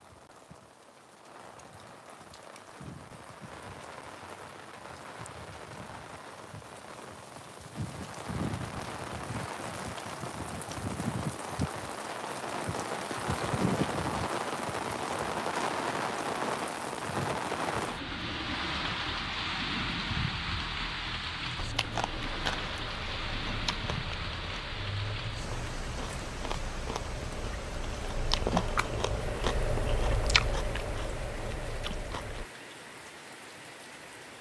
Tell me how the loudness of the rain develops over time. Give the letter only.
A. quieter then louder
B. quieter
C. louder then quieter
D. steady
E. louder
C.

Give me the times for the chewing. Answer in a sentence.
The chewing can be heard from 21.6 to 32.5 s.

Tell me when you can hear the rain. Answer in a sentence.
The rain can be heard from 0.0 to 34.3 s.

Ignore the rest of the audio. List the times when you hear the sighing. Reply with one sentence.
You can't hear the sighing here.